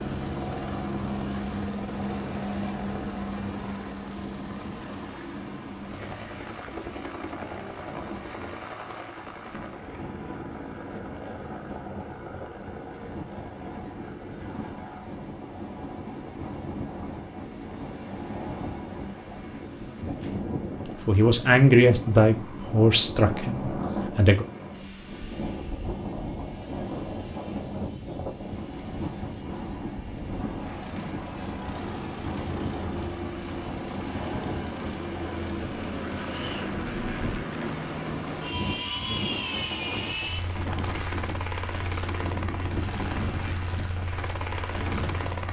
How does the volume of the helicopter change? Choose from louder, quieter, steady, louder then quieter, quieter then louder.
quieter then louder.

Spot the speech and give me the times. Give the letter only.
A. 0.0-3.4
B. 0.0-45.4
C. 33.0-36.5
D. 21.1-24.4
D.